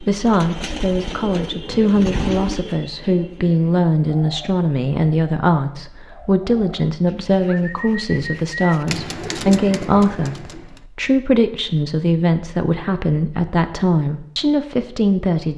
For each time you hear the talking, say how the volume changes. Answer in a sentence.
You can hear the talking from 0.0 to 15.5 s, at a steady volume.